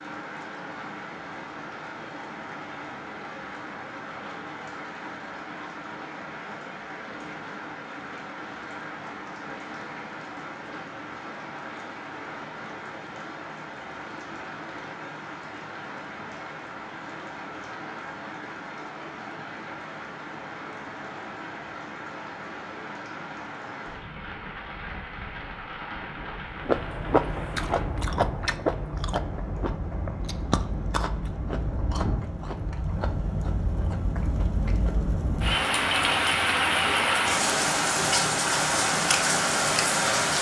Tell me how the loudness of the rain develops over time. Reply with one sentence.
The loudness of the rain goes up.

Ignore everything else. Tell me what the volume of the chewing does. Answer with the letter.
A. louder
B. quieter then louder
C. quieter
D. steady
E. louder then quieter
C.